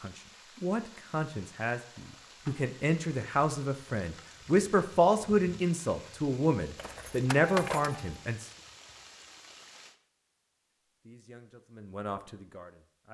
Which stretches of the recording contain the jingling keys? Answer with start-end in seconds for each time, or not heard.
1.9-2.6, 6.8-8.2.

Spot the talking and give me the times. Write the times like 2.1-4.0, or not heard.
0.0-8.5, 11.1-13.0.